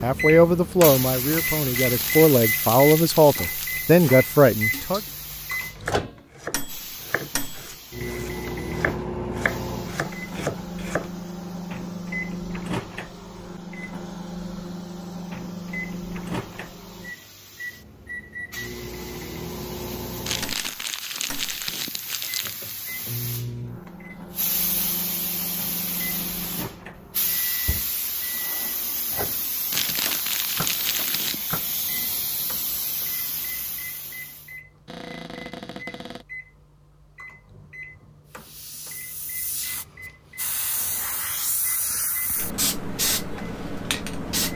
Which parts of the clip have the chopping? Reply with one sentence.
The chopping can be heard from 3.2 to 11.2 s.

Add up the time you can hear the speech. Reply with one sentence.
You can hear the speech for 5 seconds altogether.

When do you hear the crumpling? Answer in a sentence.
The crumpling can be heard from 1.7 to 3.8 s, from 20.2 to 22.7 s and from 29.7 to 31.4 s.